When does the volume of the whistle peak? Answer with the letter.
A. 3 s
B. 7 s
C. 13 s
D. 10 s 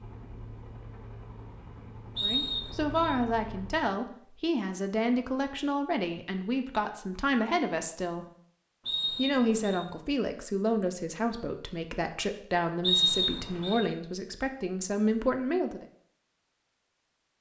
C.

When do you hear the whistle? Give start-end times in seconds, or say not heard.
2.1-3.1, 8.8-9.8, 12.8-13.8.